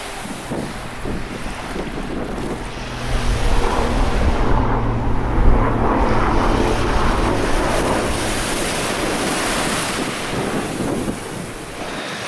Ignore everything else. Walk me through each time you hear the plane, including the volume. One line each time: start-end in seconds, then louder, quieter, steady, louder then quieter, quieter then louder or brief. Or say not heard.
0.0-12.2 louder then quieter.